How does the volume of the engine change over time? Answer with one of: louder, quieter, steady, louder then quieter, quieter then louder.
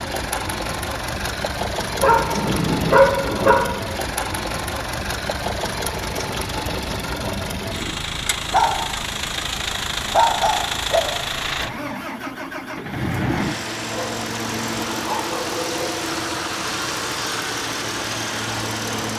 steady.